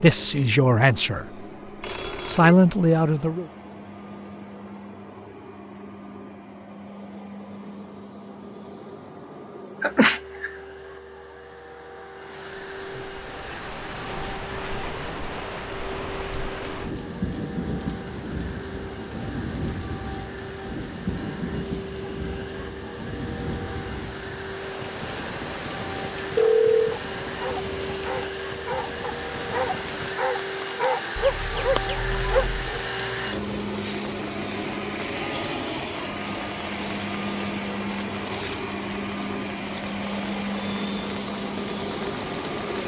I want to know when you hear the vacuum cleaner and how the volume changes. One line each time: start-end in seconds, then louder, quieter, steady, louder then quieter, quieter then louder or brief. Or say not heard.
0.0-42.8 louder.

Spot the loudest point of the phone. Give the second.
27 s.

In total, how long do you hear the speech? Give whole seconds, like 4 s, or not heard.
3 s.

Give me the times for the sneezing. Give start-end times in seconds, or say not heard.
9.8-10.5.